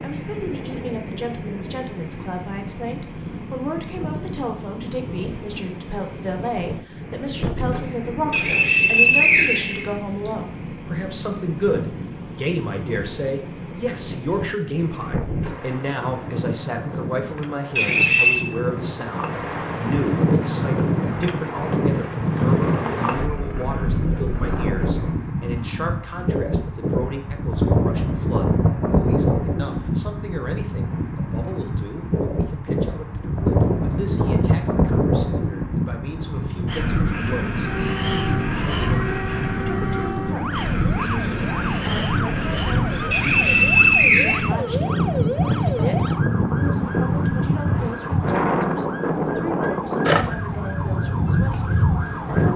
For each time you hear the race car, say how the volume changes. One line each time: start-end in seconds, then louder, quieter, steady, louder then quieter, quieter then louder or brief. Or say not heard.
not heard.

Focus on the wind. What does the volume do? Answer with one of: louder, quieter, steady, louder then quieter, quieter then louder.
louder.